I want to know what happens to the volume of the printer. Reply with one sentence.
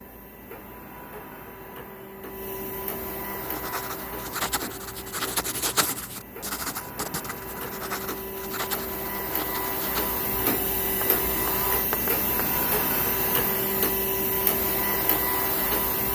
The loudness of the printer goes up.